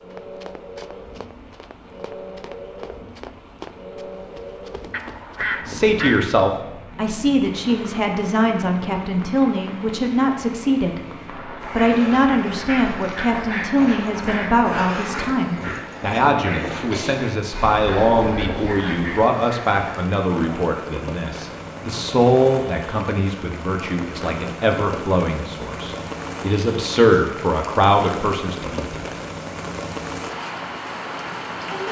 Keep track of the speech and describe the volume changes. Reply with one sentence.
The loudness of the speech stays about the same.